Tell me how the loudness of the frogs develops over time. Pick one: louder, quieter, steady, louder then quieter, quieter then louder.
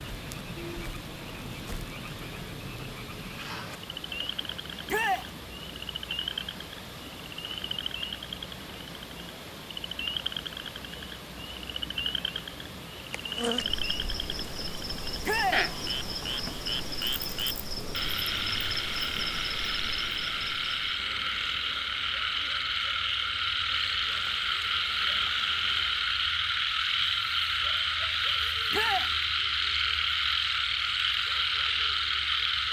louder.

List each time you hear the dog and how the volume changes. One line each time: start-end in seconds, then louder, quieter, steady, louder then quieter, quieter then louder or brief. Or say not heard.
not heard.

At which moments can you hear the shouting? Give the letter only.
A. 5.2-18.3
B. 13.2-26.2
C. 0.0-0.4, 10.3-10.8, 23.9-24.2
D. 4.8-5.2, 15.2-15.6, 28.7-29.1
D.